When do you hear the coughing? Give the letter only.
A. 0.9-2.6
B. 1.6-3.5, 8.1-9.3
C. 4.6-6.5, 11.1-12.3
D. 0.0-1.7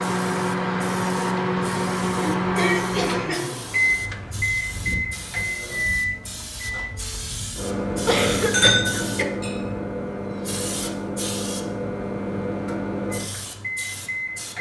B.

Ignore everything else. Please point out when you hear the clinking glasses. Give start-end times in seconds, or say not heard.
8.1-9.8.